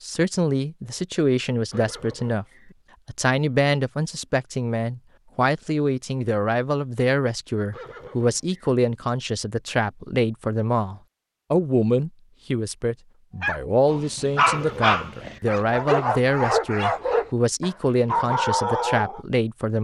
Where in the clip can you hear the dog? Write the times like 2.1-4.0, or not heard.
13.4-19.2.